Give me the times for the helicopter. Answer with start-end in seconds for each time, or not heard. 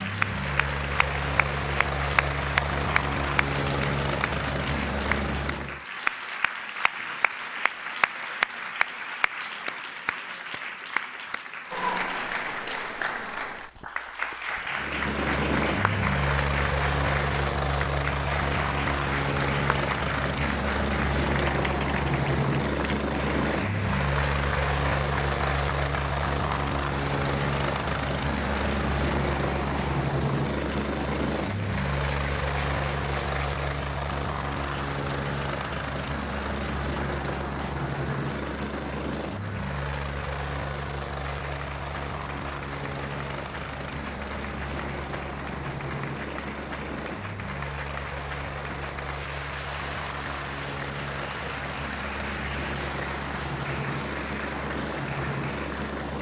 0.0-5.8, 14.7-56.1.